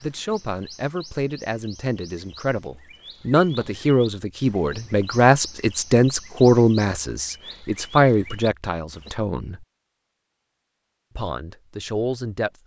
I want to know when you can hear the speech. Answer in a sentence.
You can hear the speech from 0.0 to 9.7 s and from 11.2 to 12.6 s.